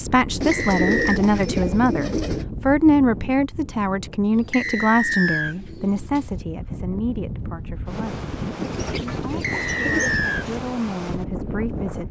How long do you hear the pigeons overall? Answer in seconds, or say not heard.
6 s.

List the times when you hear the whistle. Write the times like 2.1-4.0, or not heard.
0.5-1.2, 4.5-5.5, 9.4-10.4.